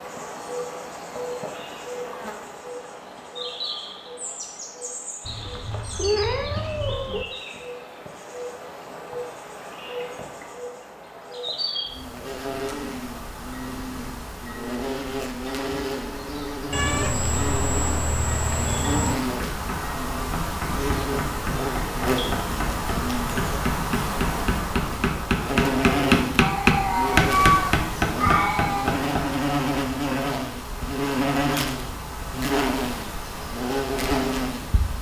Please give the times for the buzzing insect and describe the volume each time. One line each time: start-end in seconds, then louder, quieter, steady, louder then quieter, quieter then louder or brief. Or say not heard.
0.0-34.9 louder.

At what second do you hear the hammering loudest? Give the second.
27 s.